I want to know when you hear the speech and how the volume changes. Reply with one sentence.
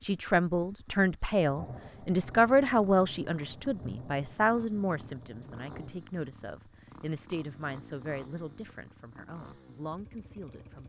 The speech can be heard from 0.0 to 10.8 s, getting quieter.